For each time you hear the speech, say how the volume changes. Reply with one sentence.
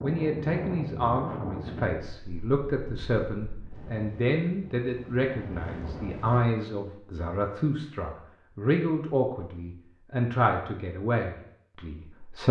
You can hear the speech from 0.0 to 12.4 s, at a steady volume.